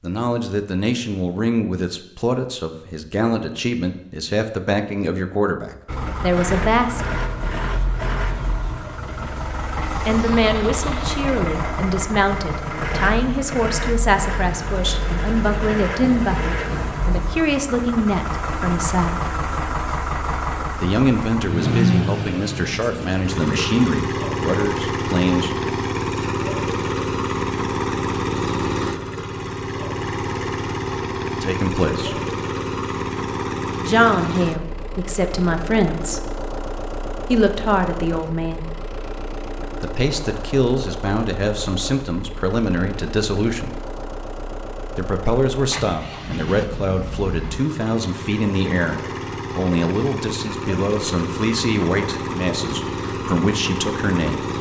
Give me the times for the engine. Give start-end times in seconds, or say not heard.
5.8-54.5.